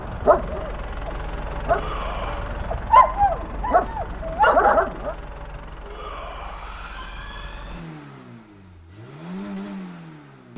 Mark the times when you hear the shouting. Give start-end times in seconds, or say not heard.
1.6-2.5, 5.8-7.8.